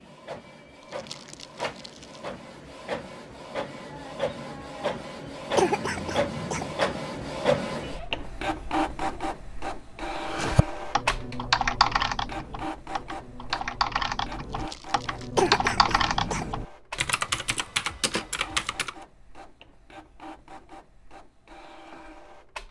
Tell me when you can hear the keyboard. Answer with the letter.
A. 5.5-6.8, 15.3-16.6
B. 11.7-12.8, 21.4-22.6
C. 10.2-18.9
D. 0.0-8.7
C.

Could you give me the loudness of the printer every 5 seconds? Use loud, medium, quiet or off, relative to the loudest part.
medium, loud, medium, quiet, quiet.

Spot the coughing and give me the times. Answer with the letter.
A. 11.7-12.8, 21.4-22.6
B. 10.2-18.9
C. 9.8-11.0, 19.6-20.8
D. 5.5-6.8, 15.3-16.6
D.